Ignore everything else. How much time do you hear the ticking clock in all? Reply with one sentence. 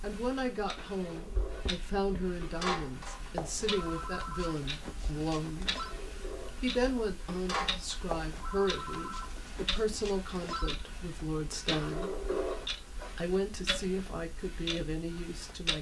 You can hear the ticking clock for 16 seconds altogether.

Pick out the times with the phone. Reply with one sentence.
The phone can be heard from 3.4 to 6.0 s and from 8.1 to 10.8 s.